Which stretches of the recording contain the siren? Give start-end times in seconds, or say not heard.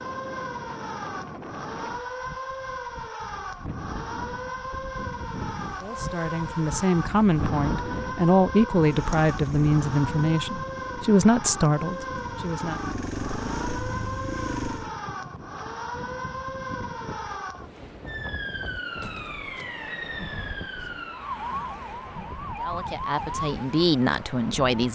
0.0-24.8.